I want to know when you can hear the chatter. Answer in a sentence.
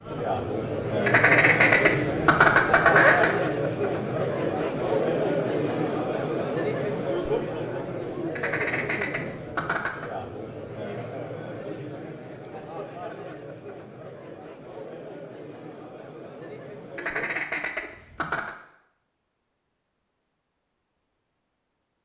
The chatter can be heard from 0.0 to 17.4 s.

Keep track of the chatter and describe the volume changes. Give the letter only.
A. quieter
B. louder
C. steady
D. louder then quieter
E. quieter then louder
A.